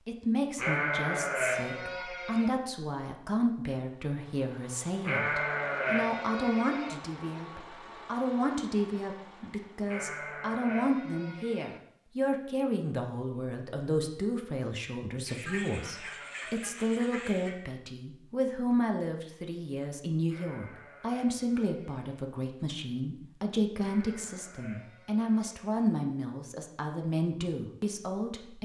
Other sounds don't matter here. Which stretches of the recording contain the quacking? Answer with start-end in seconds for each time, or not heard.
15.2-17.6.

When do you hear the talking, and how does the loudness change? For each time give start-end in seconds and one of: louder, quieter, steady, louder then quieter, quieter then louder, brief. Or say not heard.
0.1-28.5 steady.